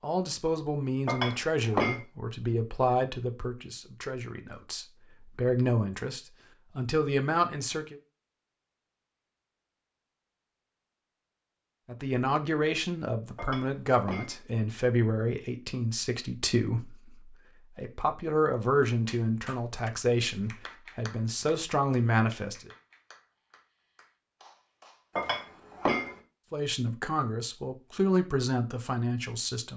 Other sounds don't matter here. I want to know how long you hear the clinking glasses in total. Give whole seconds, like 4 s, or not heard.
3 s.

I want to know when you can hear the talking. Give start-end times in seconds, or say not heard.
0.0-8.0, 11.8-22.7, 26.5-29.7.